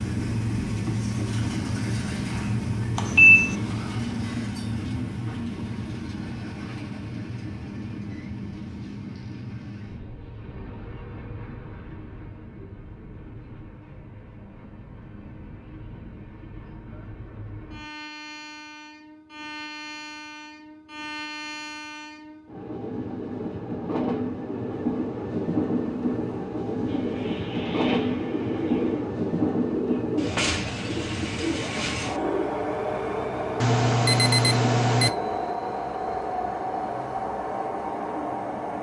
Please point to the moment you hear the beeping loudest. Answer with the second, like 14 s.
3 s.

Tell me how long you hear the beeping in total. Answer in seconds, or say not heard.
2 s.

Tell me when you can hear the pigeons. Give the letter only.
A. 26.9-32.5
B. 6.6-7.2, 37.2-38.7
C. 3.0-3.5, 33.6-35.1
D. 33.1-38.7
A.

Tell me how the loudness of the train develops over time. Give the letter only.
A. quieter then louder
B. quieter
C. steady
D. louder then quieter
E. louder
A.